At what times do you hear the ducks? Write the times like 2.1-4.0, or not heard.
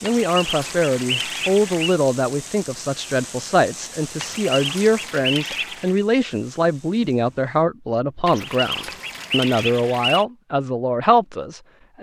0.0-1.9, 4.2-6.0, 8.2-10.2.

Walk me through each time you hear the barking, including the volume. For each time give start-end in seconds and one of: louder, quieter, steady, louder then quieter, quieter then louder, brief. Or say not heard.
not heard.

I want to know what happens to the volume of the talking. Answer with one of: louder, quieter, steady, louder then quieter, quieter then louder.
steady.